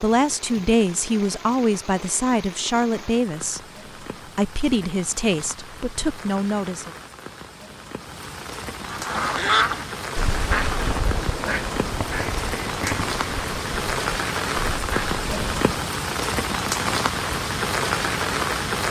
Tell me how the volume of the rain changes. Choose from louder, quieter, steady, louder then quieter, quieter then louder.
louder.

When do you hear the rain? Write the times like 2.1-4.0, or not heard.
0.0-18.8.